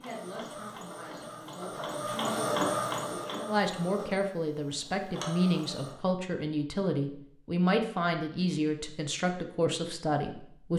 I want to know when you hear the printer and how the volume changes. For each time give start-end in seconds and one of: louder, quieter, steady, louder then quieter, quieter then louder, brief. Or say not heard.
0.0-6.0 louder then quieter.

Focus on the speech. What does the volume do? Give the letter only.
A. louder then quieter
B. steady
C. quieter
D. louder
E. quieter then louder
D.